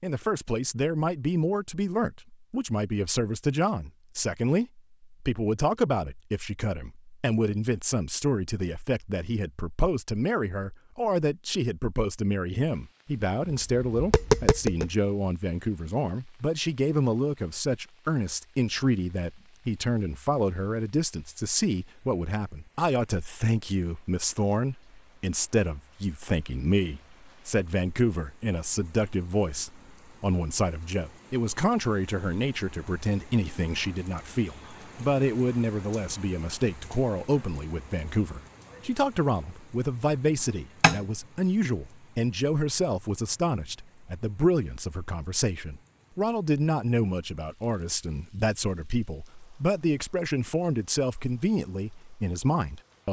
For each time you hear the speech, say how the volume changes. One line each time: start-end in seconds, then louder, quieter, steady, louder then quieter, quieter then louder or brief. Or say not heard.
0.0-53.0 steady.